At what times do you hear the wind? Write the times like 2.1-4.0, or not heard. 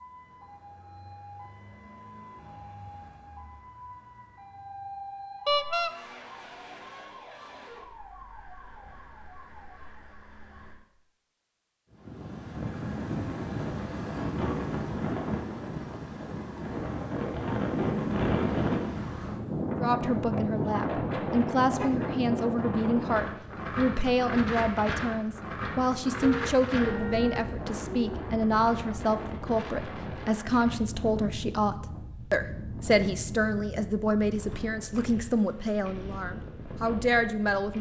11.9-37.7.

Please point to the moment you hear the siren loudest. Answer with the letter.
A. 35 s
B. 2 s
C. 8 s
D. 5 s
D.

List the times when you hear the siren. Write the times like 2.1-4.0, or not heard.
0.0-10.8.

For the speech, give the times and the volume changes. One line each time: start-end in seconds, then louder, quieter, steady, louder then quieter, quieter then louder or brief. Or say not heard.
19.8-37.7 steady.